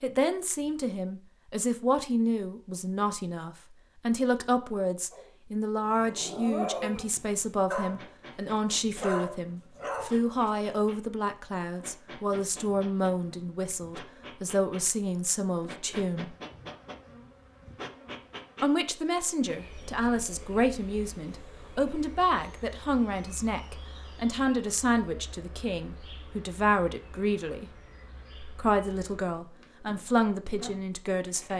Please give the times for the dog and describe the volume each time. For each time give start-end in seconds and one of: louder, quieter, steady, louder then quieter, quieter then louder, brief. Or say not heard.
5.1-10.8 louder.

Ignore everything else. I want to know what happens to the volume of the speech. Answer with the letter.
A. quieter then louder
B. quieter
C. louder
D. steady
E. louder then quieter
D.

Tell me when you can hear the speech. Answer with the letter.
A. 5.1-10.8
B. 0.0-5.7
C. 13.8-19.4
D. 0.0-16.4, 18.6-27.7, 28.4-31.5
D.